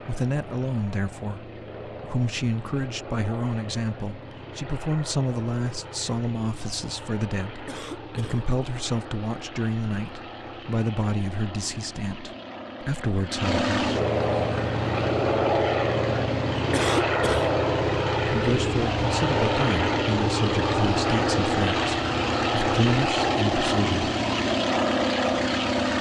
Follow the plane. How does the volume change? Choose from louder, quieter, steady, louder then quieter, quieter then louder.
louder.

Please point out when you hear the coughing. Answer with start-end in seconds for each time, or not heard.
7.7-8.4, 16.7-17.5.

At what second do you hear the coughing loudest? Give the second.
17 s.